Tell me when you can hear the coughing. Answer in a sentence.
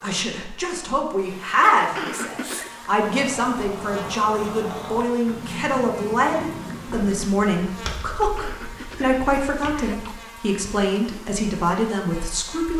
The coughing can be heard from 1.8 to 2.7 s and from 8.2 to 10.2 s.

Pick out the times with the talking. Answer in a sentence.
The talking can be heard from 0.0 to 12.7 s.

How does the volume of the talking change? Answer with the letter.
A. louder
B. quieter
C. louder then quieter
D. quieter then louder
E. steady
E.